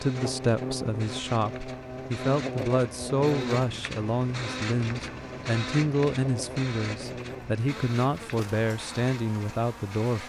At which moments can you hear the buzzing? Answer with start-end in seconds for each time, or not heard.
0.0-10.2.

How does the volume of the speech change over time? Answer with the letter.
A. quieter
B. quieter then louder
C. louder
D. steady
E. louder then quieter
D.